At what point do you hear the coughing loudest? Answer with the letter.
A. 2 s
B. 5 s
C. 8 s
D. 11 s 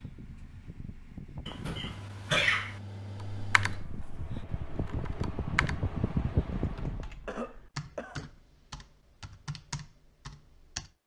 A.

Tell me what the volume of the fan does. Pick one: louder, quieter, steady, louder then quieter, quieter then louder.
louder.